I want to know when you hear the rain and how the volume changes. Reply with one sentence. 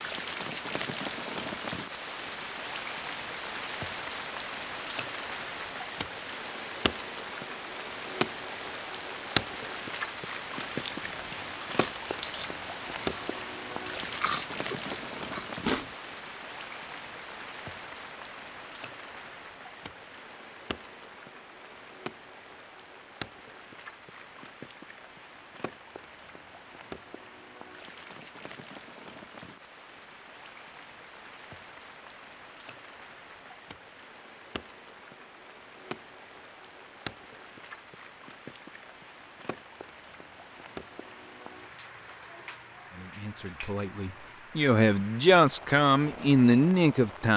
The rain can be heard from 0.0 to 47.3 s, getting quieter.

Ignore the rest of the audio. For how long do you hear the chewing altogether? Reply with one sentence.
You can hear the chewing for 5 seconds altogether.